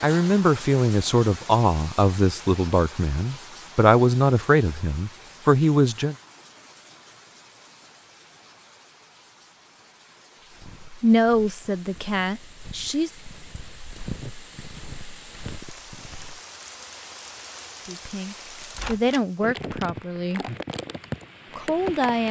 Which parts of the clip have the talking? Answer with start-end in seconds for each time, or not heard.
0.0-6.2, 11.0-13.2, 17.9-20.4, 21.6-22.2.